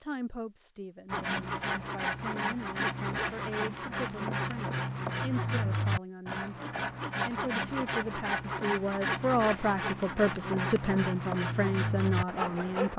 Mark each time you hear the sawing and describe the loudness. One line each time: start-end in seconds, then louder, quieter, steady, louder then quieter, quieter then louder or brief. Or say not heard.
1.1-12.9 steady.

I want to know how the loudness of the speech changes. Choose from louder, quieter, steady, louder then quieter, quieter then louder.
louder.